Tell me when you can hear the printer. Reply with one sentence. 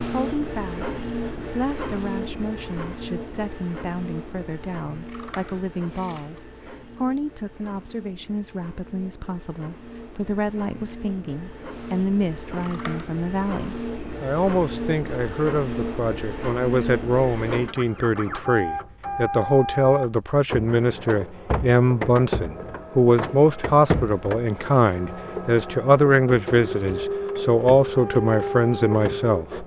The printer can be heard from 0.0 to 29.6 s.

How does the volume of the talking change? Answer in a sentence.
The loudness of the talking goes up.